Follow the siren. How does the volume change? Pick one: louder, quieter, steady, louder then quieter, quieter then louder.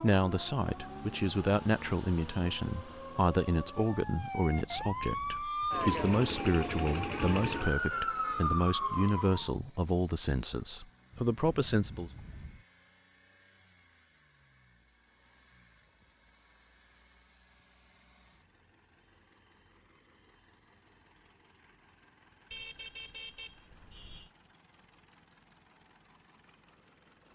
louder.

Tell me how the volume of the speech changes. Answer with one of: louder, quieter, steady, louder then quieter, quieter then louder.
steady.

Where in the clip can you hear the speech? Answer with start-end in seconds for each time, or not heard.
0.0-12.1.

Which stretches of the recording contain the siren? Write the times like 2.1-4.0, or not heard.
0.0-9.6.